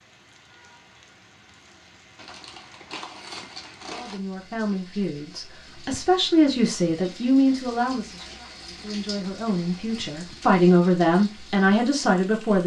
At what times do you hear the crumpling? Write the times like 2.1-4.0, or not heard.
2.1-4.2.